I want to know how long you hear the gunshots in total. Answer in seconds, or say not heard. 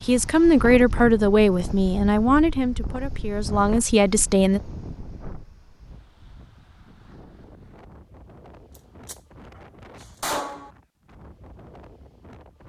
2 s.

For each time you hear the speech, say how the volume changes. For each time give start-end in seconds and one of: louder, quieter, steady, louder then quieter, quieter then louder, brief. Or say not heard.
0.1-4.6 quieter then louder.